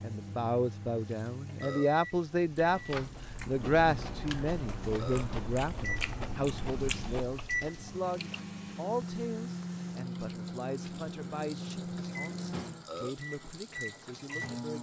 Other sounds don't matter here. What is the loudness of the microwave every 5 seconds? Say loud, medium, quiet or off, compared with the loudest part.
medium, loud, loud.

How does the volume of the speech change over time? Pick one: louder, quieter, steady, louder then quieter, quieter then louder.
quieter.